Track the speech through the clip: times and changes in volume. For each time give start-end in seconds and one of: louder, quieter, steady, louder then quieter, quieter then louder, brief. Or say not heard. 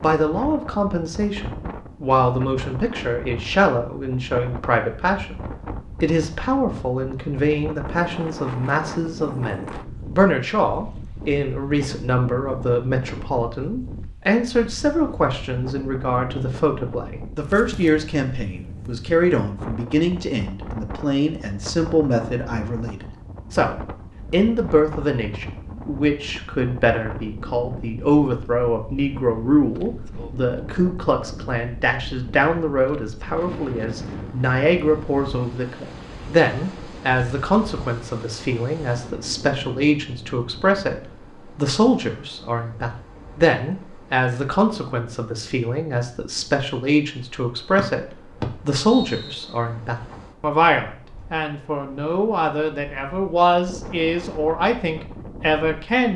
0.0-56.1 steady.